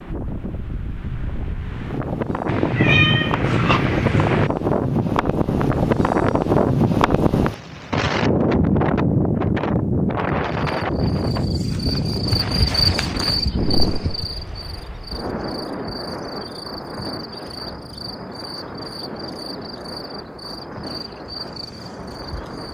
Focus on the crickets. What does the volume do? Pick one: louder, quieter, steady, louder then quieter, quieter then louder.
quieter.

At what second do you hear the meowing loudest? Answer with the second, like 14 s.
3 s.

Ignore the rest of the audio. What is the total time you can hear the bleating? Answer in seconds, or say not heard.
not heard.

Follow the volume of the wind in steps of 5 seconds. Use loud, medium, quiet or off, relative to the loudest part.
medium, loud, medium, quiet, quiet.